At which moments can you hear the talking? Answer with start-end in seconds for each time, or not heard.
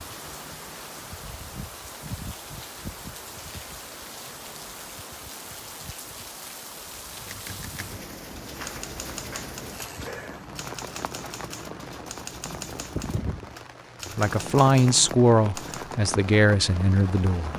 14.1-17.5.